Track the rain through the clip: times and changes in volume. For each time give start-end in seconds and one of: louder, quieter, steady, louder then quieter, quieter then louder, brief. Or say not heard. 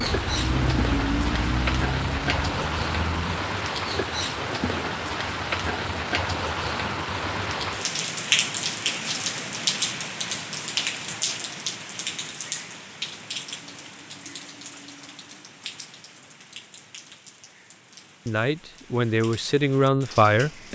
0.0-20.7 quieter.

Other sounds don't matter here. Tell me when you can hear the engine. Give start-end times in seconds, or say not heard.
0.0-3.4.